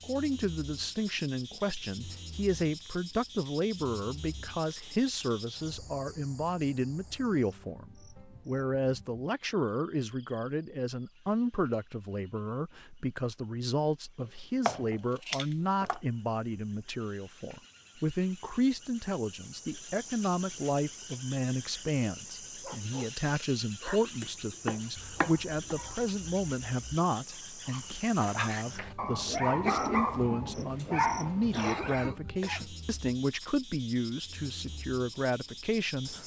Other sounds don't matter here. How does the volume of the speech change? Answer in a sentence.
The loudness of the speech stays about the same.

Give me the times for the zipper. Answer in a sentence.
The zipper can't be heard in this clip.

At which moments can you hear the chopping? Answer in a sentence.
The chopping can be heard from 14.2 to 16.0 s and from 24.2 to 25.8 s.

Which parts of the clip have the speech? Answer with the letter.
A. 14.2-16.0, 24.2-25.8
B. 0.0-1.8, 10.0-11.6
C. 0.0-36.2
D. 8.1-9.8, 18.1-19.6
C.